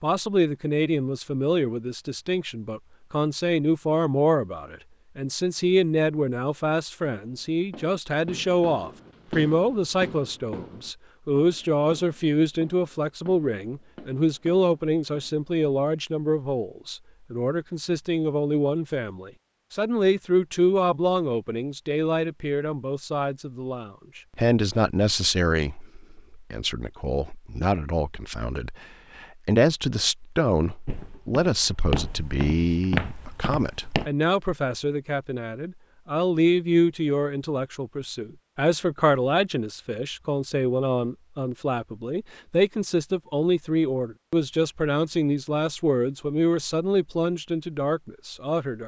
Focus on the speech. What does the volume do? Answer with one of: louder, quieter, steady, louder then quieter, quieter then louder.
steady.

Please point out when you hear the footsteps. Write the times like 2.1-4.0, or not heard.
30.9-34.1.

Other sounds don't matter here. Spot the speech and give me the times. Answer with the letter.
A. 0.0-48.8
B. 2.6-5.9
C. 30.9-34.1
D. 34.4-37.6
A.